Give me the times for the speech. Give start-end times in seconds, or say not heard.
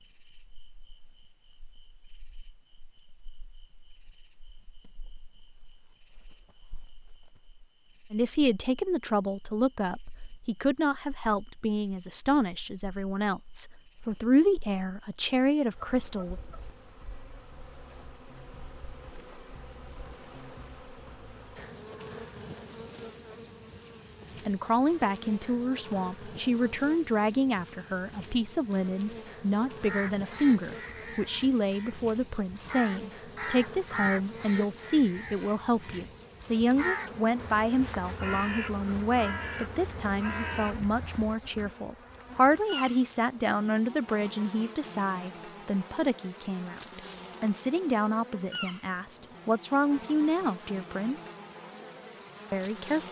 8.1-16.4, 24.4-51.4, 52.5-53.0.